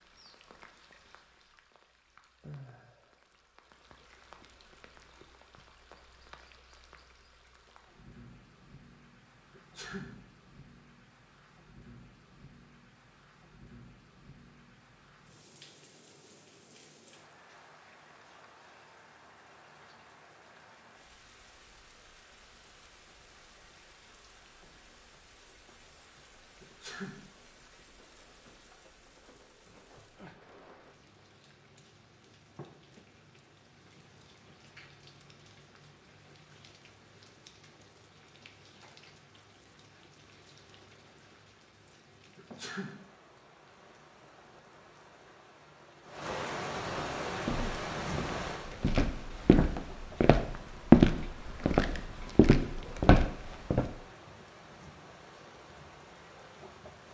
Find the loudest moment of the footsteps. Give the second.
51 s.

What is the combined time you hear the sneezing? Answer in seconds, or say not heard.
2 s.